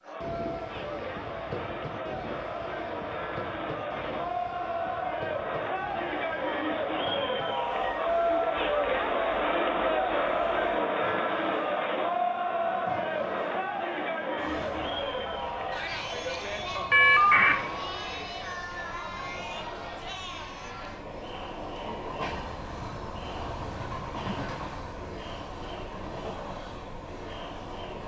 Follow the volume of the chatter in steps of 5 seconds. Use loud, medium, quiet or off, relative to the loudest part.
medium, loud, loud, medium, quiet, quiet.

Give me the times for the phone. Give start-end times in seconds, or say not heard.
16.9-17.6.